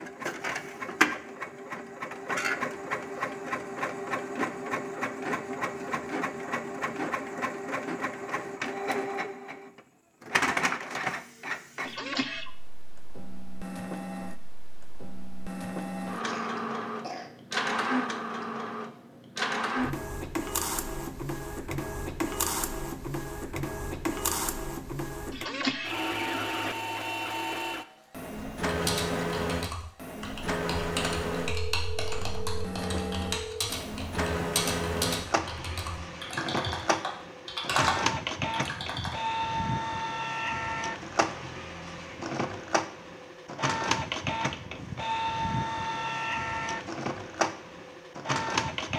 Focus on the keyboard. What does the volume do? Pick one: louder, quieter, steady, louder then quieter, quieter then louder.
louder.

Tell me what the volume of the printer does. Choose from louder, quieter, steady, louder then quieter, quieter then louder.
steady.